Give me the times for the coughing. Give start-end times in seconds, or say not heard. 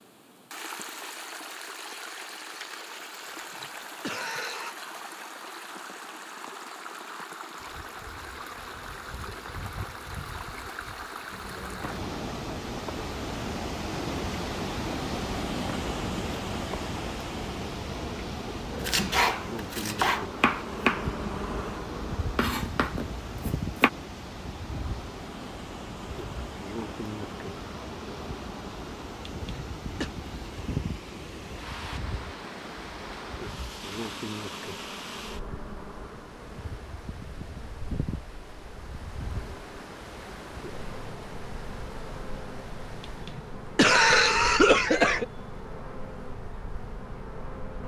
3.5-4.8, 29.4-30.1, 43.0-45.2.